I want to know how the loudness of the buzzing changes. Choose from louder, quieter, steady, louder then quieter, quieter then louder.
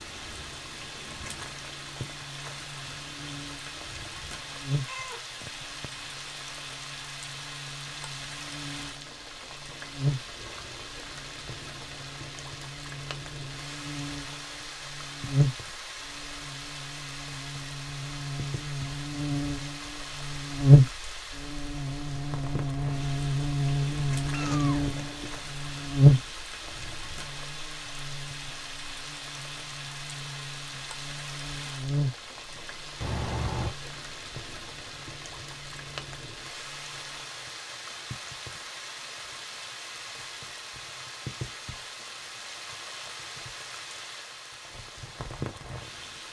louder then quieter.